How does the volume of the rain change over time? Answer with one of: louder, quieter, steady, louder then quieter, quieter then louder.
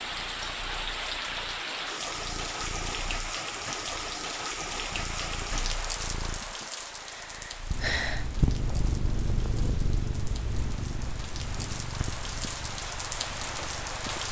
quieter then louder.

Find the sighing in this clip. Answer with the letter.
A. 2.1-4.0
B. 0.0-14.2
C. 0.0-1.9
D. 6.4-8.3
D.